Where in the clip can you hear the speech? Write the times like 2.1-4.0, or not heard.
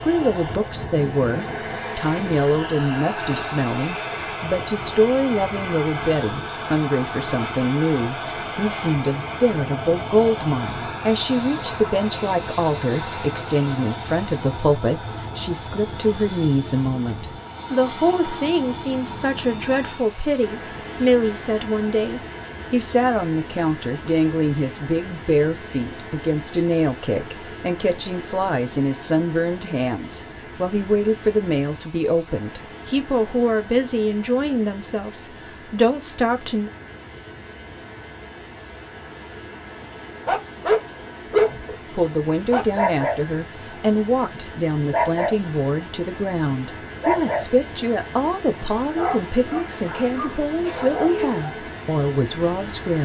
0.0-36.7, 41.5-53.0.